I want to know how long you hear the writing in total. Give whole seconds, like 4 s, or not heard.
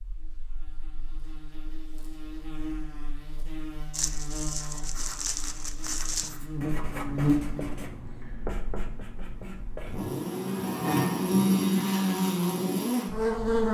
6 s.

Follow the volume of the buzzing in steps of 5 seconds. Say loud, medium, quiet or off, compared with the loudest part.
quiet, medium, loud.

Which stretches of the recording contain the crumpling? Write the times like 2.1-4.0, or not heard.
3.9-6.3.